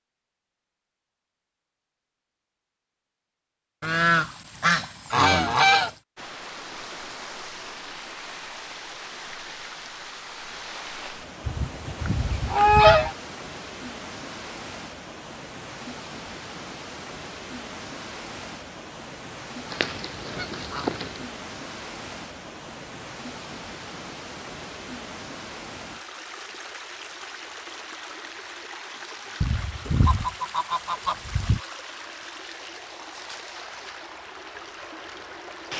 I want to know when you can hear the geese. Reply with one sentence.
The geese can be heard from 3.8 to 6.0 s, from 11.4 to 13.2 s, from 19.7 to 21.1 s and from 29.4 to 31.6 s.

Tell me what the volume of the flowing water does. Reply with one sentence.
The volume of the flowing water stays about the same.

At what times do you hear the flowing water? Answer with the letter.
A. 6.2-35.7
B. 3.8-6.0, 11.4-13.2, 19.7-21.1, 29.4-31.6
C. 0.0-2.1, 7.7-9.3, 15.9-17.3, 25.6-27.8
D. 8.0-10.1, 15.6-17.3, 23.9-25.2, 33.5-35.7
A.